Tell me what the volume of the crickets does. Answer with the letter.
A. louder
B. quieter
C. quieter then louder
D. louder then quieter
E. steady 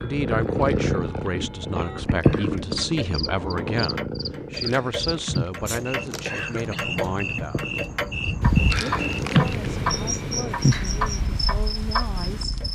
D.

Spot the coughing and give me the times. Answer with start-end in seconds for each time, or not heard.
0.6-2.8, 4.6-6.8, 8.7-9.7.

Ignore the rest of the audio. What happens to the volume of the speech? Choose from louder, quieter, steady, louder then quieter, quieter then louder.
quieter.